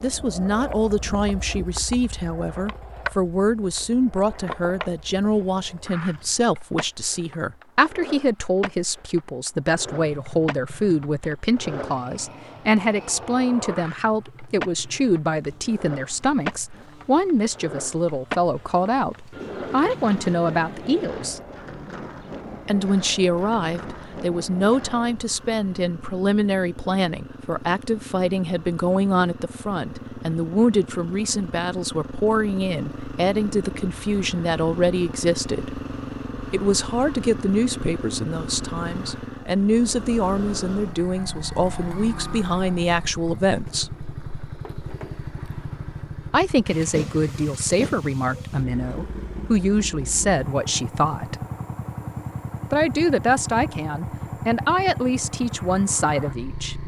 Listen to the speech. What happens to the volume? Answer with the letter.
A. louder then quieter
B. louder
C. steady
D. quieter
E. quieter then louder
C.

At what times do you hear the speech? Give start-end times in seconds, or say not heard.
0.0-21.4, 22.6-35.8, 36.5-43.9, 46.3-51.5, 52.7-56.8.